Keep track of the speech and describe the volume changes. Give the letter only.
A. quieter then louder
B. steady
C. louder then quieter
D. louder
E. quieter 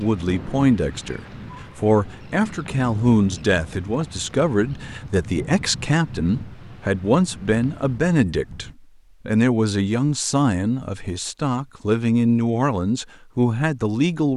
B.